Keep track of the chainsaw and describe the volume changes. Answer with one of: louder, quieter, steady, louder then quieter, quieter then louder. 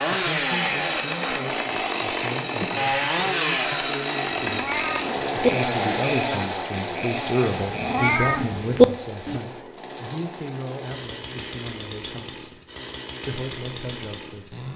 quieter.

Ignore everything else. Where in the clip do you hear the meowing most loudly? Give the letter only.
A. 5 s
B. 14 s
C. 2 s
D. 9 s
D.